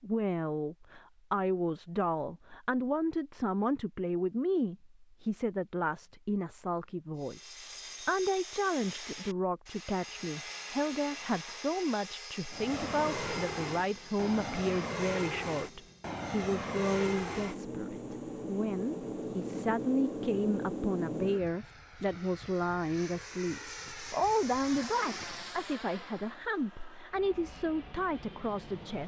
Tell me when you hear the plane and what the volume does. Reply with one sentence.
The plane can be heard from 12.5 to 29.0 s, getting quieter.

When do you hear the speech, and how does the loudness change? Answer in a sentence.
The speech can be heard from 0.0 to 29.0 s, at a steady volume.